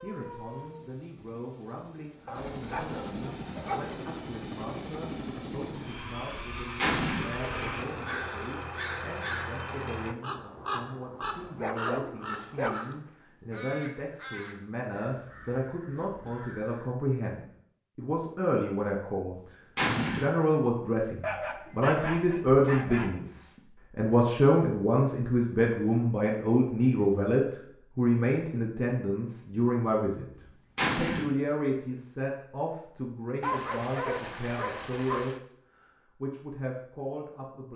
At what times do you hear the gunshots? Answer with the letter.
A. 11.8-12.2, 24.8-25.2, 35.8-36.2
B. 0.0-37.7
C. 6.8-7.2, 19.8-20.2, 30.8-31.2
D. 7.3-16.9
C.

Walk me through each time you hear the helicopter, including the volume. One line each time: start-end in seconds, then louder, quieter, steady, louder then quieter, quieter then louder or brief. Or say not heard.
0.0-8.2 louder.